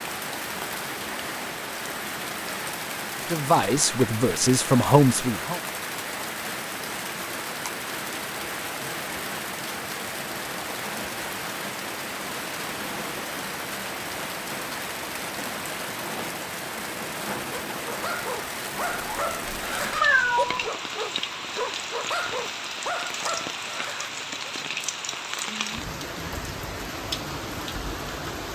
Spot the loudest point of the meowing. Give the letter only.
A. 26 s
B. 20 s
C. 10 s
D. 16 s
B.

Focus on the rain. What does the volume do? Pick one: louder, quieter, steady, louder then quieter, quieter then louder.
steady.